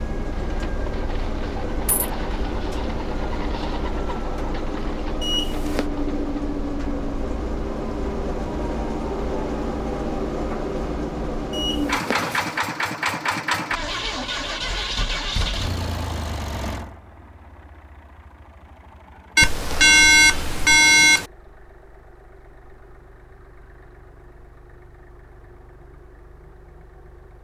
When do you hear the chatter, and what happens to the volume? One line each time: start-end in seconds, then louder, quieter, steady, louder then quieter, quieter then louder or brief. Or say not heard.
not heard.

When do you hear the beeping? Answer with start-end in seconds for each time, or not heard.
5.2-5.8, 11.5-12.4, 19.4-21.2.